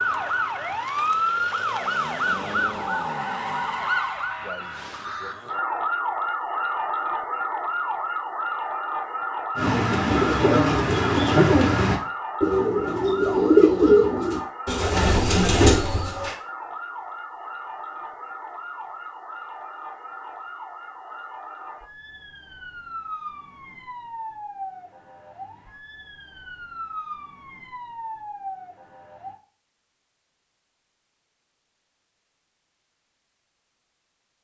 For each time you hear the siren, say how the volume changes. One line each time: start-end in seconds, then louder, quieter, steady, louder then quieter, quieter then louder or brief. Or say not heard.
0.0-29.4 quieter.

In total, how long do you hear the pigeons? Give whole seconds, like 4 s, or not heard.
7 s.